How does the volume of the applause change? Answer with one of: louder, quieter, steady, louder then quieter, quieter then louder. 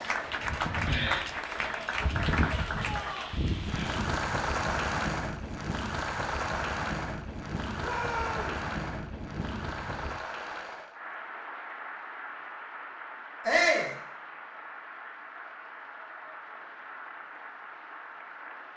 quieter.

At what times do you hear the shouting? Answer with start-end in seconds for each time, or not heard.
2.7-3.4, 7.8-8.6, 13.4-13.9.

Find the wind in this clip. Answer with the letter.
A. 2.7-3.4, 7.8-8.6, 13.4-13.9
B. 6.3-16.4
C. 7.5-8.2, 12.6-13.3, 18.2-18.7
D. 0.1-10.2
D.